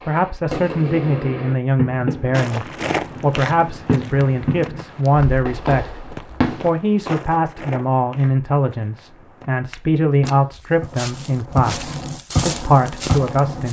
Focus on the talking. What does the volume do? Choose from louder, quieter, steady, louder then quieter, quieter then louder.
steady.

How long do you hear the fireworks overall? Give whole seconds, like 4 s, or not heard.
11 s.